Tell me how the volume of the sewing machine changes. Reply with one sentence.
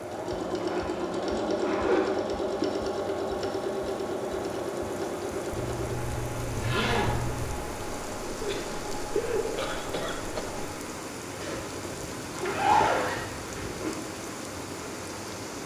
The loudness of the sewing machine goes down.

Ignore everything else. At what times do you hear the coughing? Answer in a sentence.
You can hear the coughing from 8.4 to 10.4 s.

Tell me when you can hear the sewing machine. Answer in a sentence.
You can hear the sewing machine from 0.0 to 10.8 s.